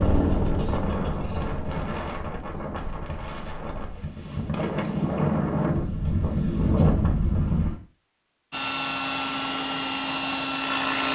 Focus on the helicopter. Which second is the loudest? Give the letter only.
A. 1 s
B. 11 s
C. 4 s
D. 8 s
B.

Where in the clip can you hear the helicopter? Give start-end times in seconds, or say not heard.
0.0-1.9, 8.5-11.1.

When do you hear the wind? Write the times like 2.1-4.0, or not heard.
0.0-7.8.